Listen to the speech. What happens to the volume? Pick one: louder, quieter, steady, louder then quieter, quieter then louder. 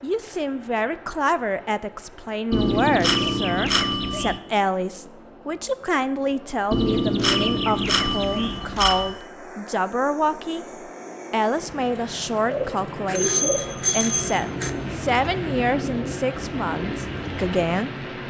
steady.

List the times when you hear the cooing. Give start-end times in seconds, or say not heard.
12.4-17.8.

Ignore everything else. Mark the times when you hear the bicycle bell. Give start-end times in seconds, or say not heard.
2.5-4.4, 6.7-9.2, 13.1-14.8.